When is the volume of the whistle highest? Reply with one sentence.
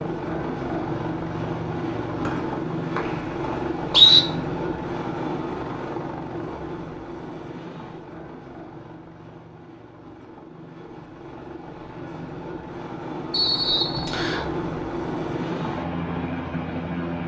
The loudest moment of the whistle is at 4 seconds.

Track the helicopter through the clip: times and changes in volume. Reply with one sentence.
You can hear the helicopter from 0.0 to 17.2 s, getting quieter then louder.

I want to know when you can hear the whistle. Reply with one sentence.
The whistle can be heard from 2.2 to 4.2 s and from 13.3 to 14.4 s.